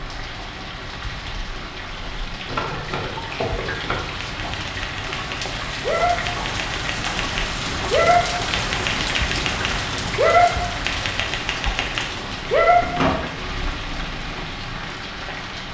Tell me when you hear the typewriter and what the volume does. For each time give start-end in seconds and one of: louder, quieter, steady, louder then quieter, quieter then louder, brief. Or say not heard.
2.5-13.3 louder.